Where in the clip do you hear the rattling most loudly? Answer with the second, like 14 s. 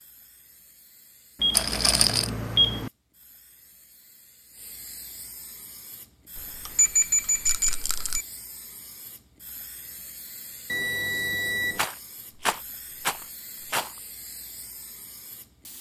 2 s.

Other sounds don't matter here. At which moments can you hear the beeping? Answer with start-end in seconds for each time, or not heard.
1.4-2.9, 6.3-8.2, 10.7-11.8.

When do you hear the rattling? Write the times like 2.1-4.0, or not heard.
1.5-2.3, 7.5-8.2, 11.8-13.9.